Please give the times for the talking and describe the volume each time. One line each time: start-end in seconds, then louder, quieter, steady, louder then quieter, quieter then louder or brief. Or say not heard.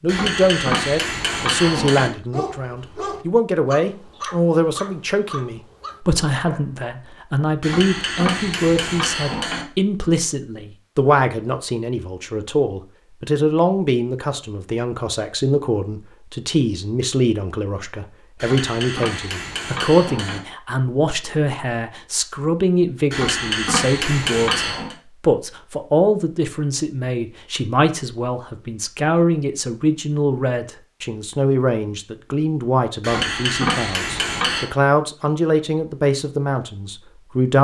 0.0-37.5 steady.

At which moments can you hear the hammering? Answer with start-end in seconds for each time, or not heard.
0.1-2.1, 7.6-9.7, 18.4-20.4, 23.1-24.9, 33.0-34.7.